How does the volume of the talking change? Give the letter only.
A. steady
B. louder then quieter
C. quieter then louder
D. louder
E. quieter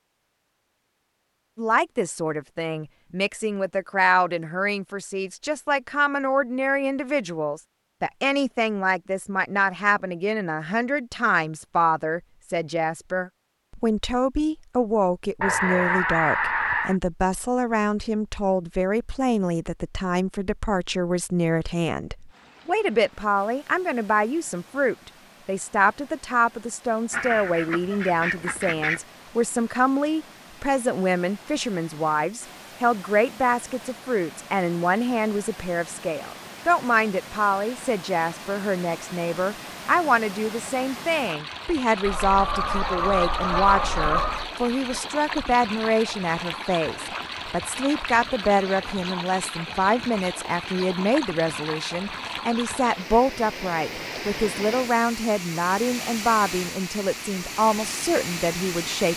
A.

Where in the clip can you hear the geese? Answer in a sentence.
You can hear the geese from 15.4 to 16.9 s, from 27.1 to 29.0 s and from 42.0 to 44.5 s.